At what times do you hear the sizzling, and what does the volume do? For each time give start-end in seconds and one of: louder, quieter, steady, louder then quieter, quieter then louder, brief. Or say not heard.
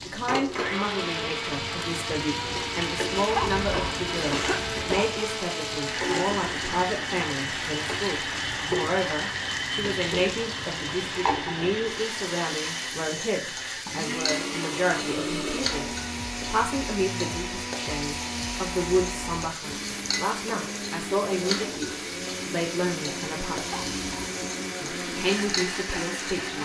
0.0-26.5 steady.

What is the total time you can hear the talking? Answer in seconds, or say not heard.
25 s.